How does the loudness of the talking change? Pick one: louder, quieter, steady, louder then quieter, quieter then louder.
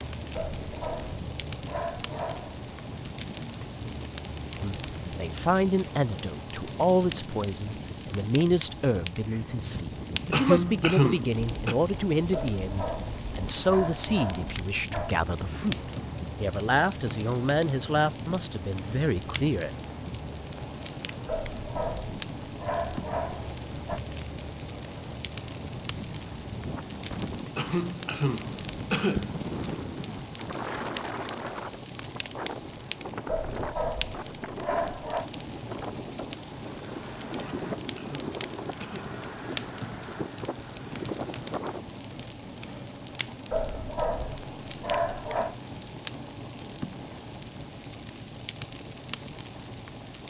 steady.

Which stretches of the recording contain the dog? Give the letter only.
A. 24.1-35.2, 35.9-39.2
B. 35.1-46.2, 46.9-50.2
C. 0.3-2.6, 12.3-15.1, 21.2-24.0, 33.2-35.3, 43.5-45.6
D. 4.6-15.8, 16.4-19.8
C.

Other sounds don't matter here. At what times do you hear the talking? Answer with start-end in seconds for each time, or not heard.
4.6-15.8, 16.4-19.8.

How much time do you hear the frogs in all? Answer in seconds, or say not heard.
not heard.